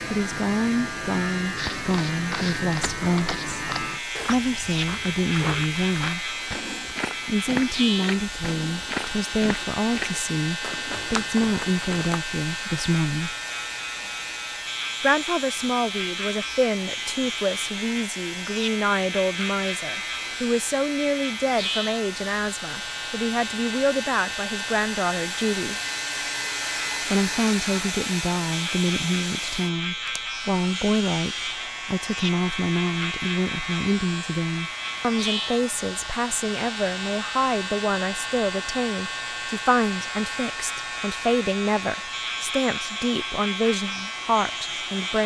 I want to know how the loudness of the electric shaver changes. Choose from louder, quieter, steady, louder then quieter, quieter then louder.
steady.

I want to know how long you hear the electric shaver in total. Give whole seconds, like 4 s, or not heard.
45 s.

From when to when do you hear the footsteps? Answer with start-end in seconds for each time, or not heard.
1.6-12.2.